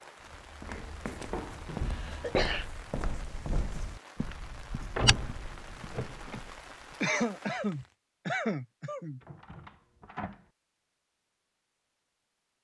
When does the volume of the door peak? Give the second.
5 s.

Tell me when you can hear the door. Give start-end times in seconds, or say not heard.
0.7-1.7, 5.0-6.4, 9.2-10.4.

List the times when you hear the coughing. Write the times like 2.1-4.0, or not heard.
1.6-2.6, 7.0-9.2.